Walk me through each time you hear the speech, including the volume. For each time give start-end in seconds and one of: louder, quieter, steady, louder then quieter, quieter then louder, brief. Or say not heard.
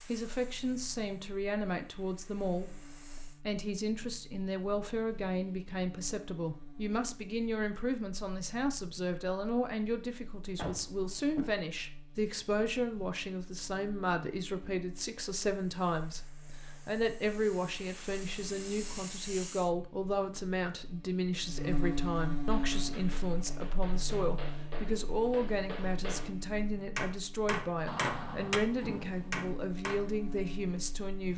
0.0-31.3 steady.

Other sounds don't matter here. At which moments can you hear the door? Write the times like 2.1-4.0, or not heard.
10.6-11.6, 27.9-29.5.